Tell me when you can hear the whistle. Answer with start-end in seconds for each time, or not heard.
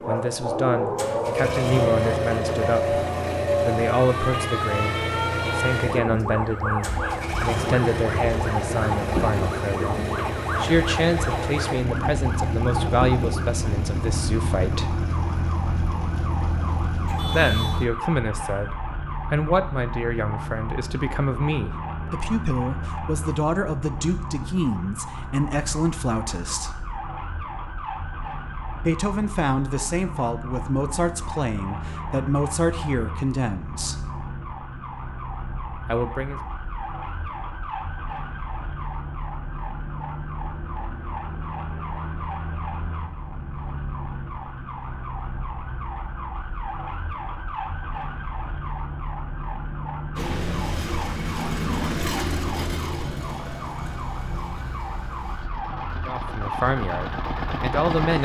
not heard.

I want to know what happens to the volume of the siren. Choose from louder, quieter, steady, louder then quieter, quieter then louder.
quieter.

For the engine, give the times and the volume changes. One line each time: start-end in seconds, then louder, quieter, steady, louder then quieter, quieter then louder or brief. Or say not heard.
0.0-17.9 steady
50.1-58.1 quieter then louder.